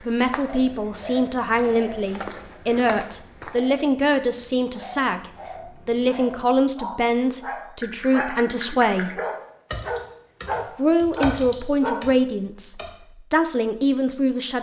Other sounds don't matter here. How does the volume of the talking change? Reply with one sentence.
The volume of the talking stays about the same.